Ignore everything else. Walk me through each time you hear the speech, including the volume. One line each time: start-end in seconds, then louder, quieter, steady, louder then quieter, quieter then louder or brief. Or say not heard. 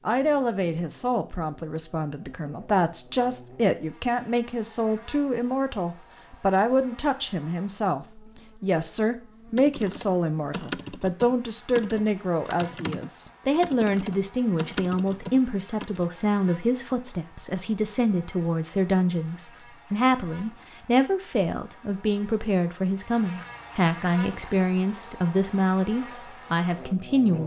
0.1-27.4 steady.